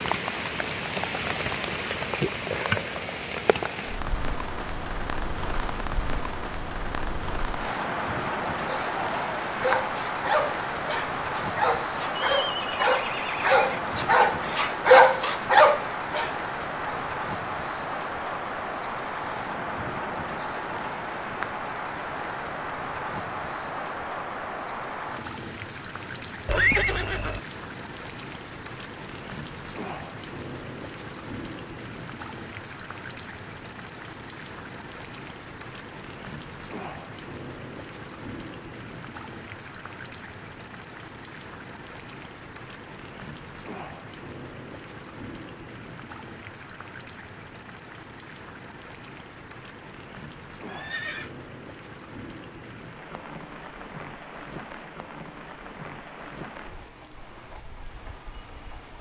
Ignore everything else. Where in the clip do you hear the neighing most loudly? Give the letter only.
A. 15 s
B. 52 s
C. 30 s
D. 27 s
D.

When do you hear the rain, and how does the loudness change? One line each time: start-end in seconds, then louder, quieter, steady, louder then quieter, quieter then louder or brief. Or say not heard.
0.0-58.9 quieter.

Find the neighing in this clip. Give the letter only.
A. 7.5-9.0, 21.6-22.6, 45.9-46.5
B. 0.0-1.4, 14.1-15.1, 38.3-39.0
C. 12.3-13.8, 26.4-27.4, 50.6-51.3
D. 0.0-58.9
C.